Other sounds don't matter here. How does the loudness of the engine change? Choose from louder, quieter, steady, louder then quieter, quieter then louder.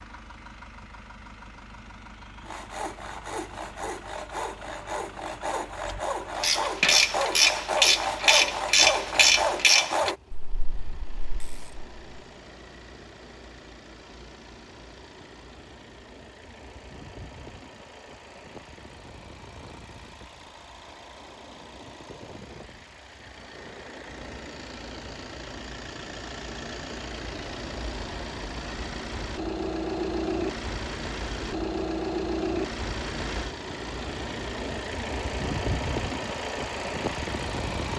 louder.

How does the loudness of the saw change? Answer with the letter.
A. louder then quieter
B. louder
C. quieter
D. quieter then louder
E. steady
B.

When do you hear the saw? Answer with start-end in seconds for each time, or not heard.
2.5-10.2.